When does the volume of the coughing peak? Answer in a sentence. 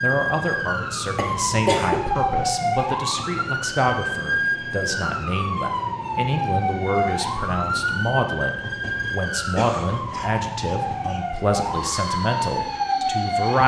The volume of the coughing peaks at 2 seconds.